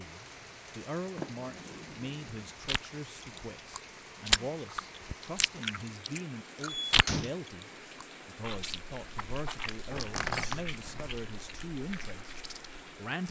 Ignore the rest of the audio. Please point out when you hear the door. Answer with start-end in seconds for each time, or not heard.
1.1-2.5, 6.7-7.3, 9.9-11.1.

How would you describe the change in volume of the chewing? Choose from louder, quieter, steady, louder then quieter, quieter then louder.
quieter.